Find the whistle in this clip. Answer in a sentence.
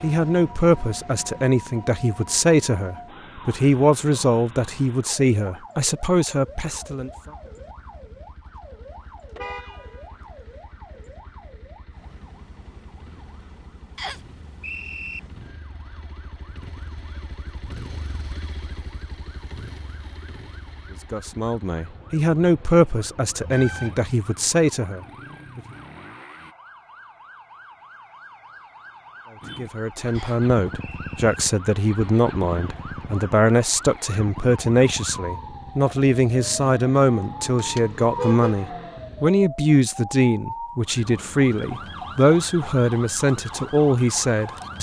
You can hear the whistle from 13.9 to 15.2 s and from 30.1 to 31.4 s.